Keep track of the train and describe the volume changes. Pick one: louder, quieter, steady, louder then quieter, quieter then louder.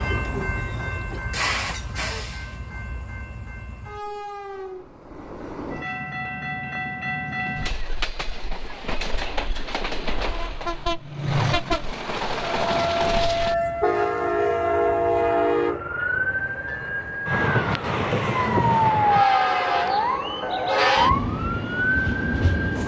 louder.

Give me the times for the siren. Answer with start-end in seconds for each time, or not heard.
12.6-22.8.